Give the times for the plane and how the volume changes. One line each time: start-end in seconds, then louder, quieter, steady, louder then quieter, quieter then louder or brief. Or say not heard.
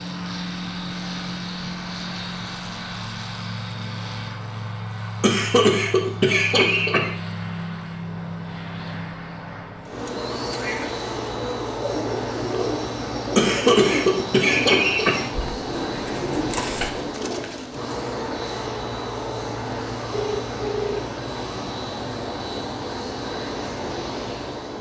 0.0-24.7 steady.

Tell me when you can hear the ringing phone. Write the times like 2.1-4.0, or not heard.
20.1-21.1.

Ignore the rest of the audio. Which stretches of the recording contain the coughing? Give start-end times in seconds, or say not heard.
5.2-7.1, 13.3-15.5.